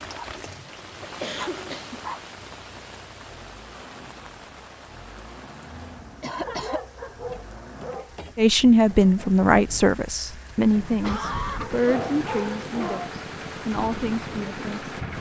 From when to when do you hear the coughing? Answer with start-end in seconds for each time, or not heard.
0.5-2.0, 6.2-6.8, 11.0-11.8.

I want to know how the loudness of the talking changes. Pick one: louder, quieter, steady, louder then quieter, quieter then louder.
quieter.